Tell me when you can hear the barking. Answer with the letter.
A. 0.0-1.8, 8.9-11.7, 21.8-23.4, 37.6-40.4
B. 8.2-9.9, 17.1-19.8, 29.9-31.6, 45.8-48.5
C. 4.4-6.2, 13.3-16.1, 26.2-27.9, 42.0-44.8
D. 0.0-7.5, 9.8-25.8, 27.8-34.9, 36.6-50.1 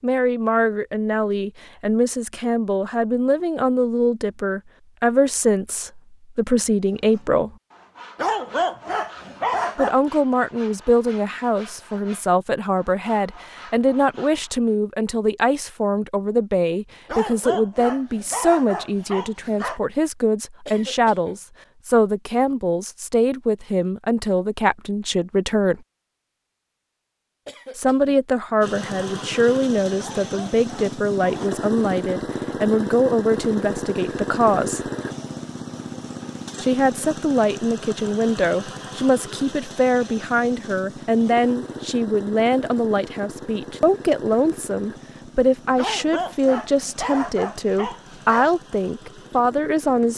B.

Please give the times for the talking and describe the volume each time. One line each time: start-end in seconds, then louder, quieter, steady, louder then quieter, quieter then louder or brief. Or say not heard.
0.0-7.5 steady
9.8-25.8 steady
27.8-34.9 steady
36.6-50.1 steady.